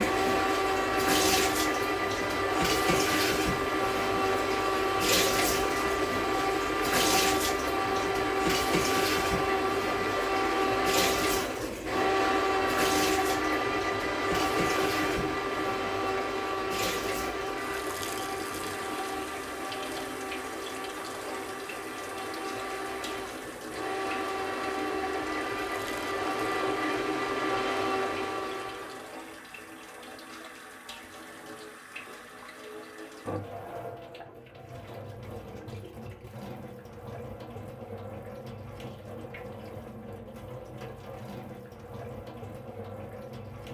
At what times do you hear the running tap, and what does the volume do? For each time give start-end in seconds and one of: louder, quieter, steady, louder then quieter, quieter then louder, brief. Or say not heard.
0.0-43.6 quieter.